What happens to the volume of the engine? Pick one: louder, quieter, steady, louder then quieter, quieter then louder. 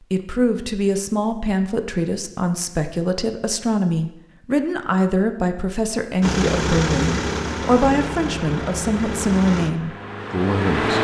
quieter.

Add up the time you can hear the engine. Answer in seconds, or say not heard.
5 s.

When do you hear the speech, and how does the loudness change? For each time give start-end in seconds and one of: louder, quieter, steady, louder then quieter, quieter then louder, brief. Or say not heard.
0.1-10.9 steady.